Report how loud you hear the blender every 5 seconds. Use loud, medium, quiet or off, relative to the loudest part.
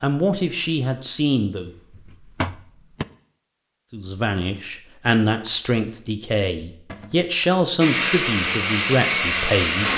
off, loud.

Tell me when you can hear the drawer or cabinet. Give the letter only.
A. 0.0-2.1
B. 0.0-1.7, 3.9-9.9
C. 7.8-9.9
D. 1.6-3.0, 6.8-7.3
D.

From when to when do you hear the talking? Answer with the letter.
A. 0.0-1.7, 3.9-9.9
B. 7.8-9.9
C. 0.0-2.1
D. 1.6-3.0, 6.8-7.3
A.